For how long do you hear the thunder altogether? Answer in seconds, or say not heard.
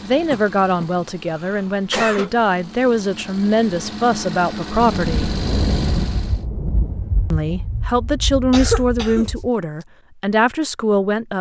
5 s.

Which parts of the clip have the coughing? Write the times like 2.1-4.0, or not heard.
0.3-2.3, 8.5-9.3.